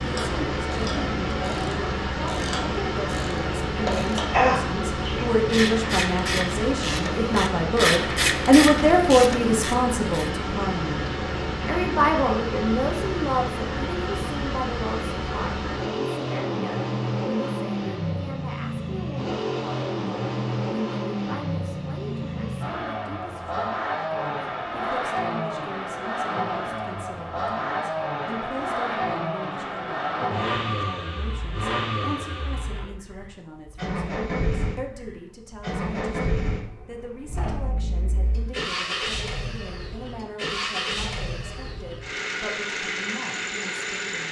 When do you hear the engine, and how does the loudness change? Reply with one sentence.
You can hear the engine from 0.0 to 44.2 s, at a steady volume.